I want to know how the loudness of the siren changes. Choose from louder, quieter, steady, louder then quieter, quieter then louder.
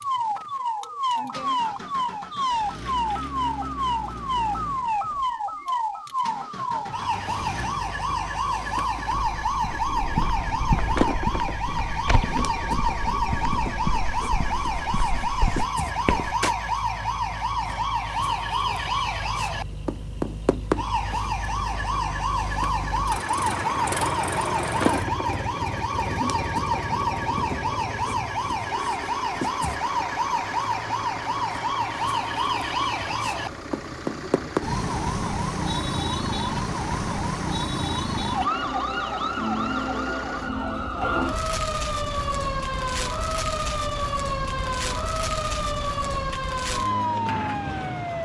steady.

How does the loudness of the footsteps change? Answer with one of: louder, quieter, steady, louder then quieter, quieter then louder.
quieter then louder.